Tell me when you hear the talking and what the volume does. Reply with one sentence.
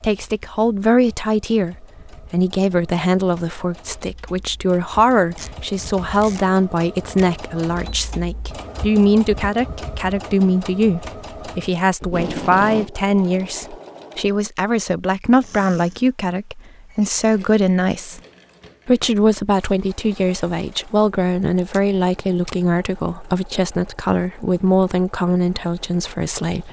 The talking can be heard from 0.0 to 18.2 s, at a steady volume; and from 18.9 to 26.6 s, at a steady volume.